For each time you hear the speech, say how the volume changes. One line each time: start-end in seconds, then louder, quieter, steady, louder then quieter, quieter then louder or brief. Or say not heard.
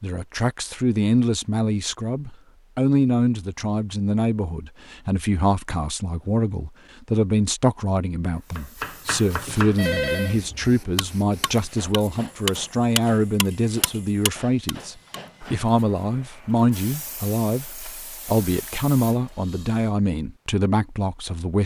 0.0-21.6 steady.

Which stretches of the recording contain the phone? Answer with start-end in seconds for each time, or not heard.
9.6-10.3.